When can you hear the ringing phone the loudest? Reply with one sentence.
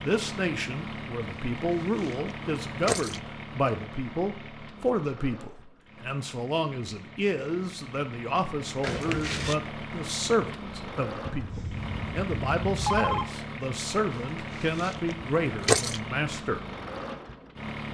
The loudest moment of the ringing phone is at 13 seconds.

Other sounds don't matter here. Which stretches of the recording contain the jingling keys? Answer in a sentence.
The jingling keys can be heard from 1.4 to 3.2 s, from 8.8 to 9.6 s and from 14.1 to 16.0 s.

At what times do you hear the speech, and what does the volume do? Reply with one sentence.
You can hear the speech from 0.0 to 16.6 s, at a steady volume.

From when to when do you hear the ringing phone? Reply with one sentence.
The ringing phone can be heard from 11.2 to 13.2 s.